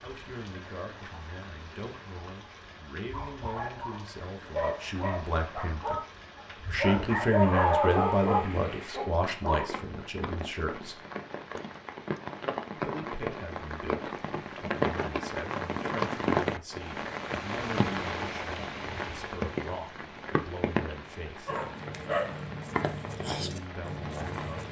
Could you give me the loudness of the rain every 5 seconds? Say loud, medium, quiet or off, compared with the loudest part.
quiet, quiet, loud, loud, medium.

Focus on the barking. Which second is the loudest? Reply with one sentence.
The loudest moment of the barking is at 8 seconds.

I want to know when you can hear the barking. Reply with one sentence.
You can hear the barking from 3.1 to 9.7 s and from 21.4 to 24.6 s.